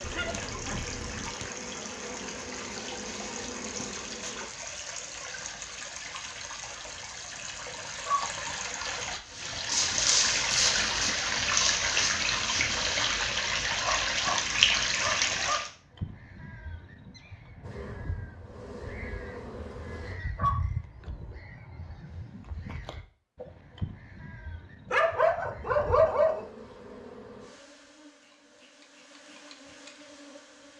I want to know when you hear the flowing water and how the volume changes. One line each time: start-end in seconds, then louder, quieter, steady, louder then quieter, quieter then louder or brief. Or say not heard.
0.0-15.7 louder.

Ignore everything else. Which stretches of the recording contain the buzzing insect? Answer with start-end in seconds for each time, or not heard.
0.0-4.5, 17.6-20.1, 26.0-30.7.